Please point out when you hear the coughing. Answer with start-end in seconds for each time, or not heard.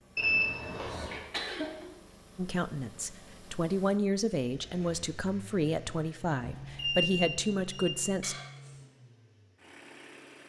0.8-1.9, 8.2-8.8.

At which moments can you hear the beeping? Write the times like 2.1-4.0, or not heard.
0.1-1.2, 6.4-8.1.